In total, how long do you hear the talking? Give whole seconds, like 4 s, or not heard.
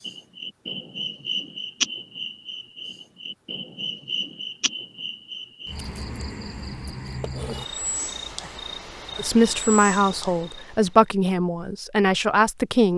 4 s.